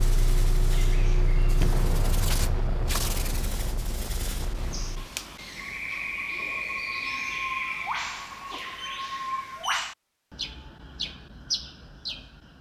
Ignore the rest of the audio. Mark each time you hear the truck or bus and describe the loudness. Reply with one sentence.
You can hear the truck or bus from 0.0 to 5.1 s, getting quieter.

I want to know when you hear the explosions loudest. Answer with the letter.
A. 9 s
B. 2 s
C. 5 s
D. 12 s
B.